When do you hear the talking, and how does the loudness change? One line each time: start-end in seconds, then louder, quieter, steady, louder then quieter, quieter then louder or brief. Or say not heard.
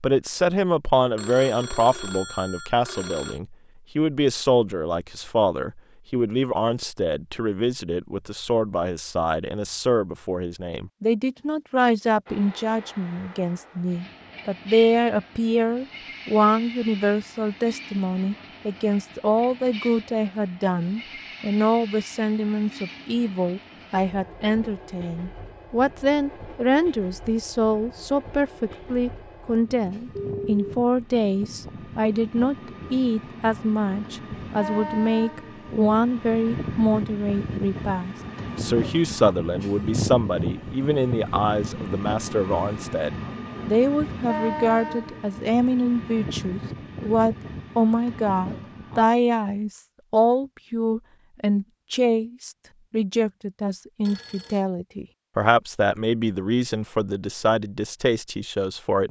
0.0-59.0 steady.